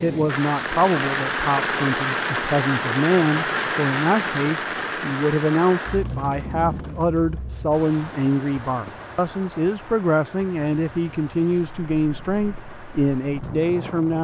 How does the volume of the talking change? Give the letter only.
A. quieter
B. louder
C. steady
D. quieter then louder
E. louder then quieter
C.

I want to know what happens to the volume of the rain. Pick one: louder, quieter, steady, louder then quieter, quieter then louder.
quieter.